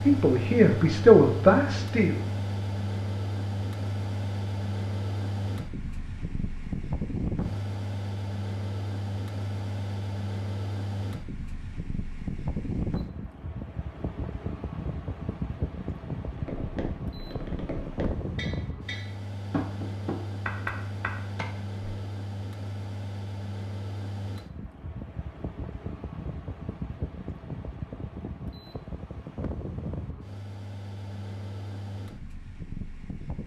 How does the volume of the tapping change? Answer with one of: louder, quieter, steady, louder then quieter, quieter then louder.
louder.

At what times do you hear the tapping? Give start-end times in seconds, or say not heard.
16.3-22.1.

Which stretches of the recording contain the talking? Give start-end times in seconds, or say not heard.
0.1-2.2.